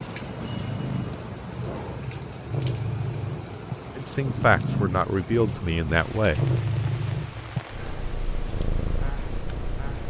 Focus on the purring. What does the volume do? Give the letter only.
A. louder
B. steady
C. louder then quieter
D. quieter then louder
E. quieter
C.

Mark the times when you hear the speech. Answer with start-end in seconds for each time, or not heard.
4.0-6.5.